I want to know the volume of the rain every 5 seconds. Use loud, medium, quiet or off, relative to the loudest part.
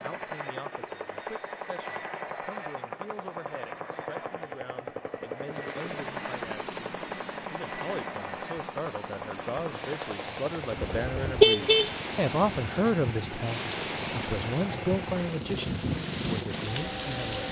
off, medium, loud, loud.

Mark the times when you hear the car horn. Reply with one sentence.
The car horn can be heard from 10.8 to 11.9 s.